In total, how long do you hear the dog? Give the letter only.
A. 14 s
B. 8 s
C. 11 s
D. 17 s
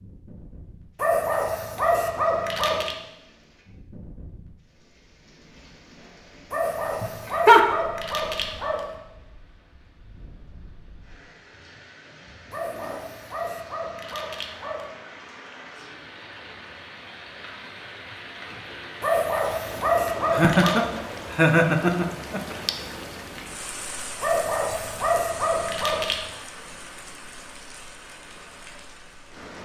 C.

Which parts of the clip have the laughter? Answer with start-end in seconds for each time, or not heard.
7.0-7.7, 20.3-22.6.